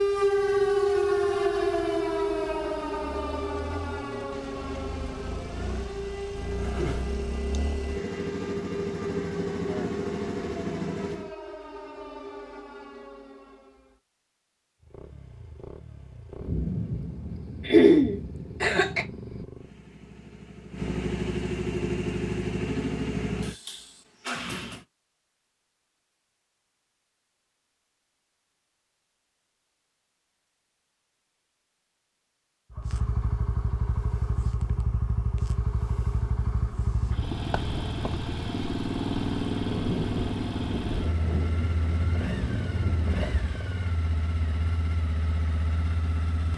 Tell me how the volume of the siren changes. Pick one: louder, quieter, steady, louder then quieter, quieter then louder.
quieter.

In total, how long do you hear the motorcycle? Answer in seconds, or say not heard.
35 s.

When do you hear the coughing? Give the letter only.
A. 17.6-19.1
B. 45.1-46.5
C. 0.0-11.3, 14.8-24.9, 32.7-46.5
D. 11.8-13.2
A.